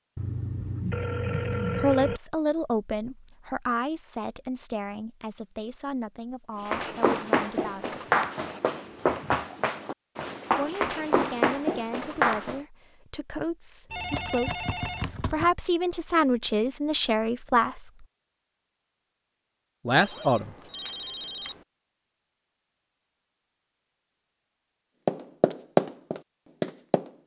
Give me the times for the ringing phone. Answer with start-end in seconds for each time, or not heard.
0.1-2.2, 13.9-15.5, 19.9-21.6.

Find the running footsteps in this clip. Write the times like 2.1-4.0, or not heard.
6.6-12.6, 25.1-27.1.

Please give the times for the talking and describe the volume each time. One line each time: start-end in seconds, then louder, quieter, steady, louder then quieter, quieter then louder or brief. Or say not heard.
1.8-8.0 quieter
10.6-18.1 louder
19.9-20.5 brief.